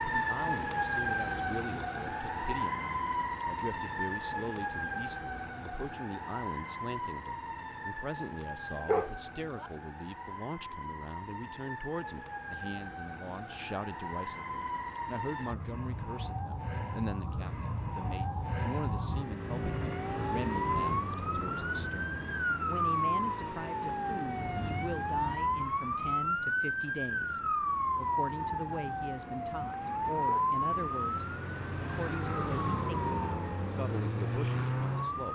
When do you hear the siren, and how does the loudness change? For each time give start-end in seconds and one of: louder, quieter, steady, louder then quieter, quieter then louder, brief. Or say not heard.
0.0-35.2 quieter then louder.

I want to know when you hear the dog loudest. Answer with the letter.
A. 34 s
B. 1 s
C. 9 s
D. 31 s
C.